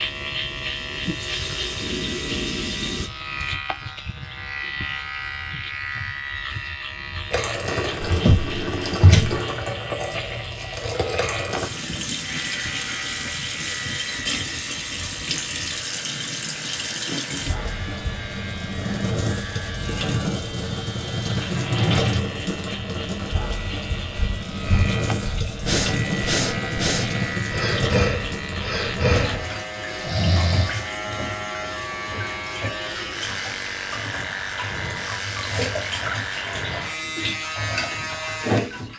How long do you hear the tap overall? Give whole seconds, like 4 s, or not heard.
35 s.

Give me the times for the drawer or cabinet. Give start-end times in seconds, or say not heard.
8.0-9.4, 21.4-22.4, 26.4-27.4.